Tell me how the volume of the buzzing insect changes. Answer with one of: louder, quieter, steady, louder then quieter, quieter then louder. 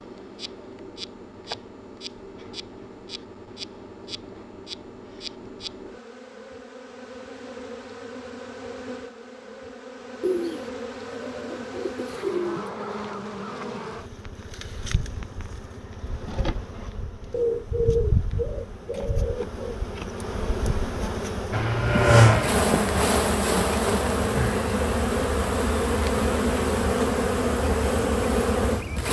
louder.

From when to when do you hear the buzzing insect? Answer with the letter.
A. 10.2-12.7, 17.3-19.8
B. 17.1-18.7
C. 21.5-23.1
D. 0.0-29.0
D.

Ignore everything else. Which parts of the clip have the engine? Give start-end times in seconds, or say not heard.
21.5-23.1.